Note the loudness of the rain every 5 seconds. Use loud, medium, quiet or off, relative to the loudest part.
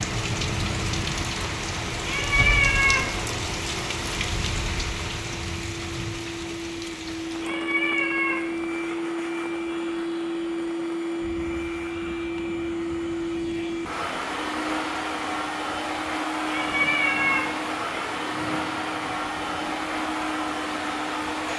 loud, medium, quiet, quiet, quiet.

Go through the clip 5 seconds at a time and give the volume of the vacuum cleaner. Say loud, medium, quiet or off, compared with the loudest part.
quiet, loud, loud, loud, loud.